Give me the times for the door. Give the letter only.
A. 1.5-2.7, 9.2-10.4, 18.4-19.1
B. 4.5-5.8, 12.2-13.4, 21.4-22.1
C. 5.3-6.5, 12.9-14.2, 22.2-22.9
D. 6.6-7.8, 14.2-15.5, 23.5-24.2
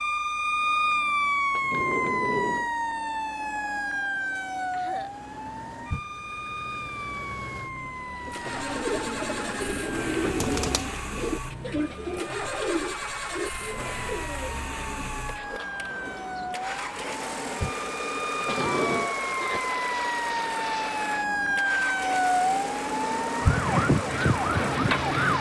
A.